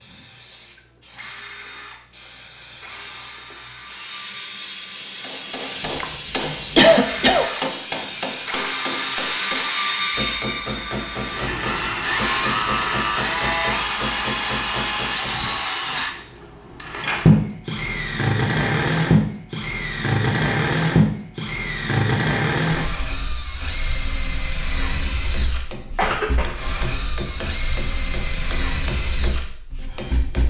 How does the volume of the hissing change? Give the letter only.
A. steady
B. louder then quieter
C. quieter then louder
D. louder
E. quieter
D.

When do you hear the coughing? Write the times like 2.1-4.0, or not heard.
5.8-7.5, 25.9-26.6.